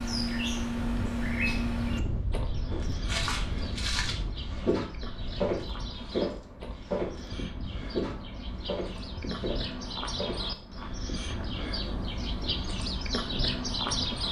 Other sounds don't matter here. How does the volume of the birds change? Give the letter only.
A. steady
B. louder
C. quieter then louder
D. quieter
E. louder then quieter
C.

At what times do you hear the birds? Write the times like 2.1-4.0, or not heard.
0.0-14.2.